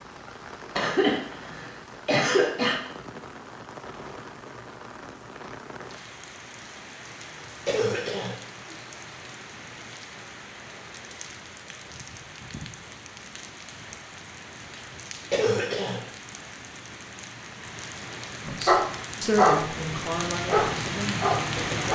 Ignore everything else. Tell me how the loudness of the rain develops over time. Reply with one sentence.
The volume of the rain goes up.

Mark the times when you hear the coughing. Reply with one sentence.
You can hear the coughing from 0.8 to 2.8 s, from 7.7 to 8.3 s and from 15.3 to 16.0 s.